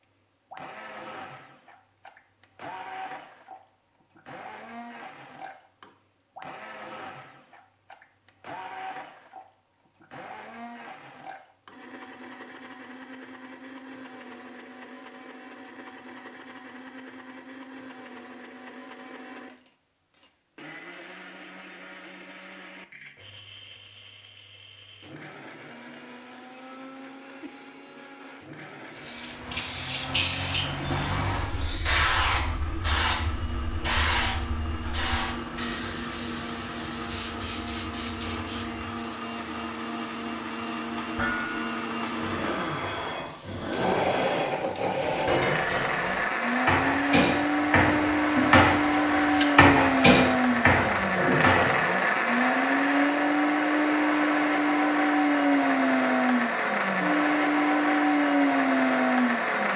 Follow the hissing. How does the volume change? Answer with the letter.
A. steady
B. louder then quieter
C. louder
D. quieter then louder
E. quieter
E.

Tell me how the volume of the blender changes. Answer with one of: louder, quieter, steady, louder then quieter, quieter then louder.
louder.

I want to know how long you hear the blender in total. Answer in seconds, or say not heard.
60 s.